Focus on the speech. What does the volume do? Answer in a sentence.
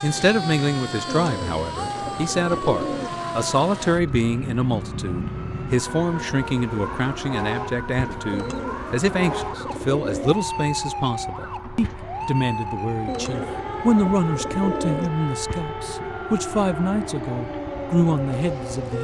The volume of the speech stays about the same.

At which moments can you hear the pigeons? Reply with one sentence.
You can hear the pigeons from 1.1 to 3.1 s, from 8.3 to 10.3 s and from 13.1 to 15.1 s.